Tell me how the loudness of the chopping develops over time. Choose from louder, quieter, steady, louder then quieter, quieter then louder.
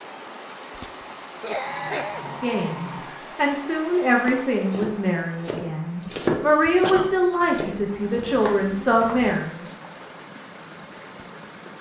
louder then quieter.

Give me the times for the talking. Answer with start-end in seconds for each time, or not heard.
2.4-9.7.